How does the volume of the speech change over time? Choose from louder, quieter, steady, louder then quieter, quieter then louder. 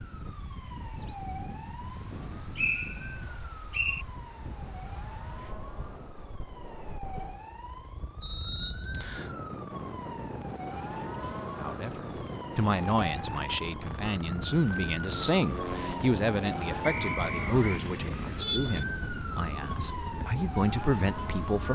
steady.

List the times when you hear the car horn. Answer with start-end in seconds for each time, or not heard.
17.2-18.9.